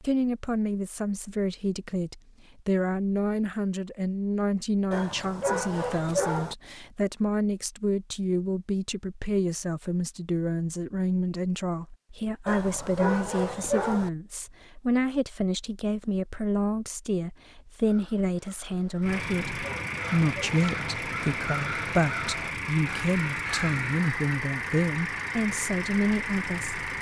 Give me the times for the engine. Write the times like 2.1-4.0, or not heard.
19.0-26.9.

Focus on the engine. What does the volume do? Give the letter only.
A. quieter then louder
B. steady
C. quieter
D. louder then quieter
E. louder
B.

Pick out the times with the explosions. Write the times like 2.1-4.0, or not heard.
not heard.